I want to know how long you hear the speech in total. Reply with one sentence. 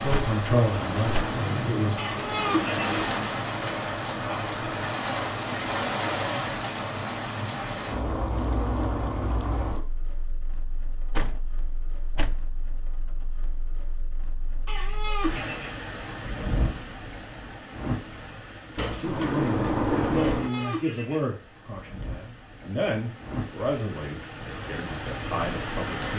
You can hear the speech for 9 seconds altogether.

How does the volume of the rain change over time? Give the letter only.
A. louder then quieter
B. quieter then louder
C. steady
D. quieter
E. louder
B.